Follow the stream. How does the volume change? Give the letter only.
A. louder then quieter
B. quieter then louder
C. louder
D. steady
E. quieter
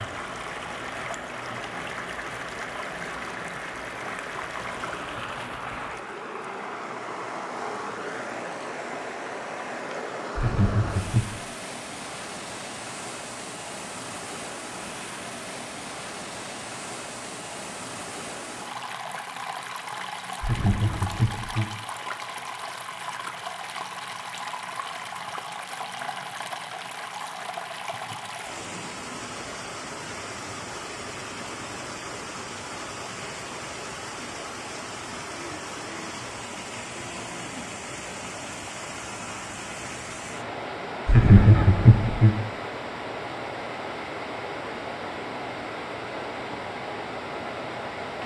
D.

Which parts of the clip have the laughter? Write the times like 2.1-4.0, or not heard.
10.3-11.3, 20.4-21.8, 41.0-42.4.